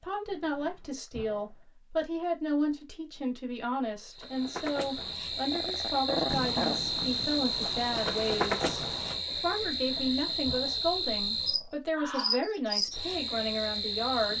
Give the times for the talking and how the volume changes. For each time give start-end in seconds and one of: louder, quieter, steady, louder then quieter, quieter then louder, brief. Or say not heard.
0.0-14.3 steady.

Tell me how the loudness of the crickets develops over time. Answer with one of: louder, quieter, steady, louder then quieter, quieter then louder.
steady.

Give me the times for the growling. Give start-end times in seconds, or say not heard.
0.2-1.8, 5.0-6.8, 9.6-11.8.